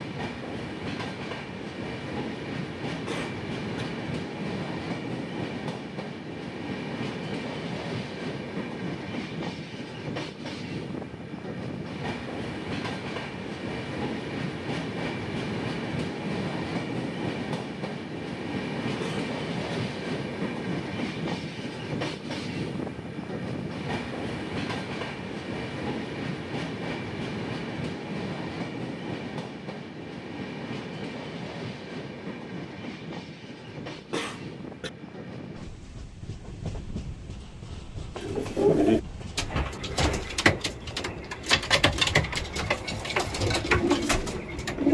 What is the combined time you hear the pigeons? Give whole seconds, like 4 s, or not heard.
7 s.